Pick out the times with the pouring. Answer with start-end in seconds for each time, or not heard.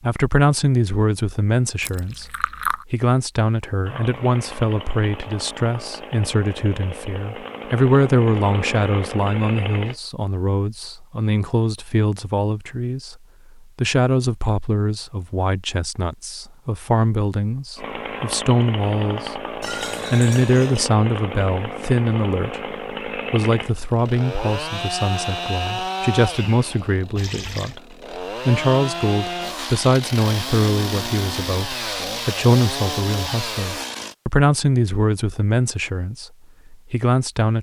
1.8-2.9, 19.6-20.9, 27.1-27.8.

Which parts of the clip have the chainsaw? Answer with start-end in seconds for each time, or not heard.
3.9-10.0, 17.8-34.1.